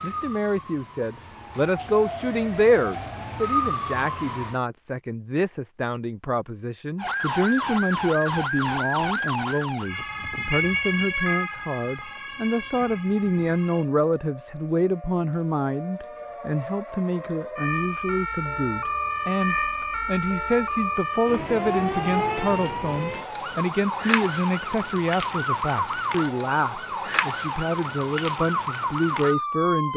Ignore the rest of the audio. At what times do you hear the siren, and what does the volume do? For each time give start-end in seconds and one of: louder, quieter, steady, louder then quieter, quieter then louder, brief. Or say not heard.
0.0-4.6 louder
7.0-29.9 quieter then louder.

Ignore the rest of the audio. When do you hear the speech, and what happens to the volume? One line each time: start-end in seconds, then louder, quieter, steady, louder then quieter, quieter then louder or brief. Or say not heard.
0.0-29.9 steady.